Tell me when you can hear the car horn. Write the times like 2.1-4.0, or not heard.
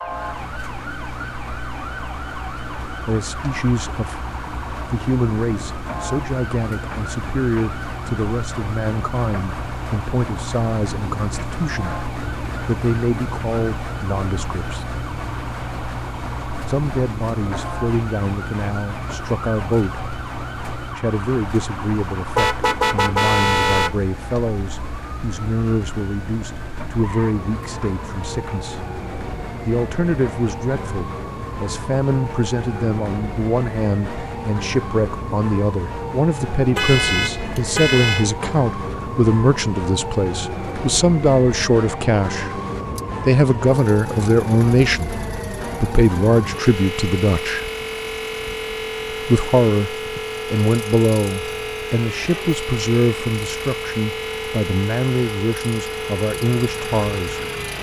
22.4-23.9, 36.8-38.2.